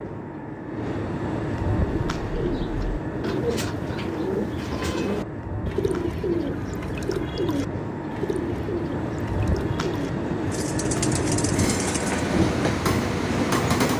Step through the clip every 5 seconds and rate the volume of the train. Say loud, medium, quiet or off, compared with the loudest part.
medium, medium, loud.